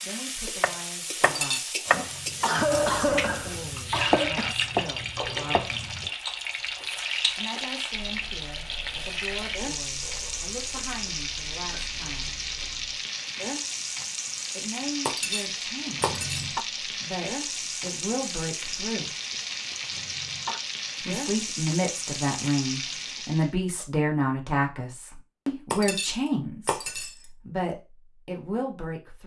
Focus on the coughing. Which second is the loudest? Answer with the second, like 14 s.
3 s.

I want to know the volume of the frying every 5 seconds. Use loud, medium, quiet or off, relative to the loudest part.
loud, loud, loud, loud, loud, off.